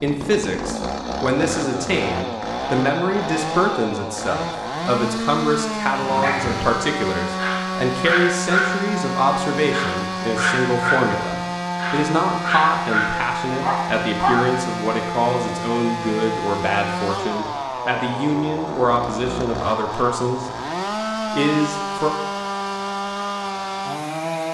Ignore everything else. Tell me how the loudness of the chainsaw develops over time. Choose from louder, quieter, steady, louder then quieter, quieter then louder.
steady.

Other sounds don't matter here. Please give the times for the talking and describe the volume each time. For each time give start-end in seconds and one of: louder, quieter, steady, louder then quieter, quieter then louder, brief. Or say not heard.
0.0-20.5 steady
21.3-22.1 brief.